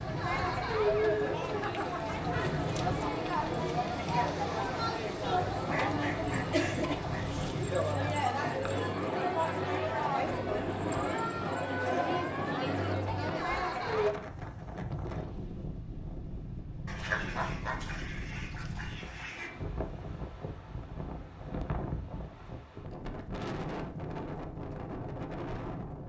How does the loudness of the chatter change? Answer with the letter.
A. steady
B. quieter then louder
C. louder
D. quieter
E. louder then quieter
A.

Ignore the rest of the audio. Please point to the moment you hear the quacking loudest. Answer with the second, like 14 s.
17 s.